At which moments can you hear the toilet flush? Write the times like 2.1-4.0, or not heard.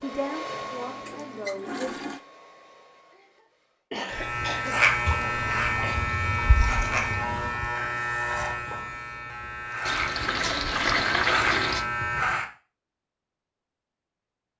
0.5-2.2, 5.0-7.7, 9.8-11.8.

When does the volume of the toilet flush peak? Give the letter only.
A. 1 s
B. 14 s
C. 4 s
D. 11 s
D.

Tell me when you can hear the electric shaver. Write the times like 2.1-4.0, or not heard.
4.1-12.4.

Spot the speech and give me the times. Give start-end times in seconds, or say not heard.
0.0-1.9.